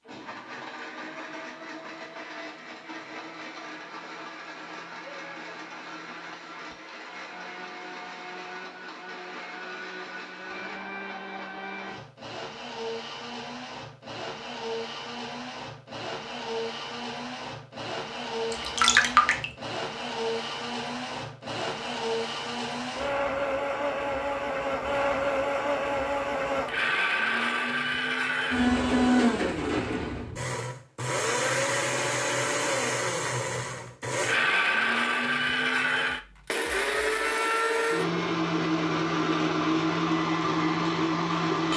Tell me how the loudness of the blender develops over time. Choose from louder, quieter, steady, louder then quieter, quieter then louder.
louder.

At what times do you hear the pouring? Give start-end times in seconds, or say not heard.
18.5-19.4.